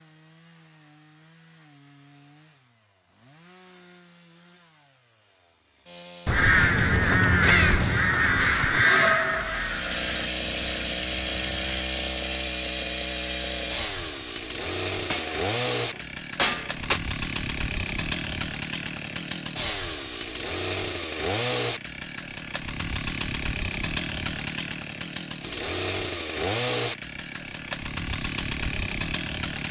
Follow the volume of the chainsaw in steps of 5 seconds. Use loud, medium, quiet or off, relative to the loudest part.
quiet, medium, loud, loud, loud, loud.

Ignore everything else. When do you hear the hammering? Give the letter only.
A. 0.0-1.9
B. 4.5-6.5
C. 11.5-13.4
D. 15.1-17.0
D.